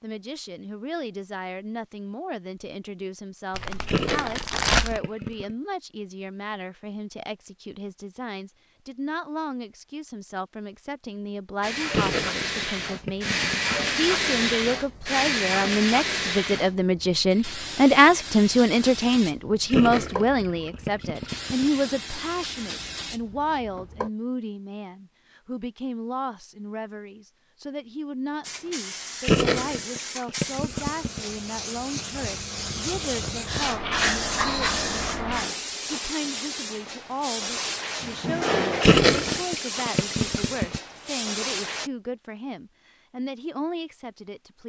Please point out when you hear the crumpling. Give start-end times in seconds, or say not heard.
3.5-5.0.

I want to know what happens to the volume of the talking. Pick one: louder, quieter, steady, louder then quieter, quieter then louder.
louder then quieter.